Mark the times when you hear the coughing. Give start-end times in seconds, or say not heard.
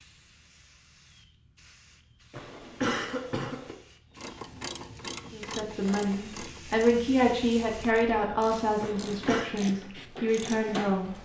2.3-3.8, 8.8-9.5.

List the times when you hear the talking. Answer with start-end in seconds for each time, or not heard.
5.3-11.2.